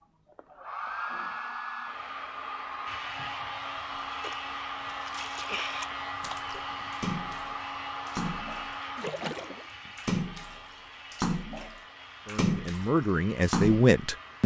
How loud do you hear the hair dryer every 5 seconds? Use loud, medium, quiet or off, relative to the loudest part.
loud, loud, quiet.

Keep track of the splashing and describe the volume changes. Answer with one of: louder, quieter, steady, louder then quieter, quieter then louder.
louder.